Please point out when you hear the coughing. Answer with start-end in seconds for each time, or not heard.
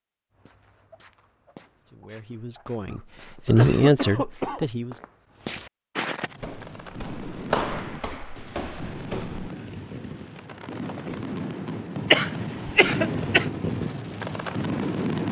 2.9-4.7, 12.1-13.4.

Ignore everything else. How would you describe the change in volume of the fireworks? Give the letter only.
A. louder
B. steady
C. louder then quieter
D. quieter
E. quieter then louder
A.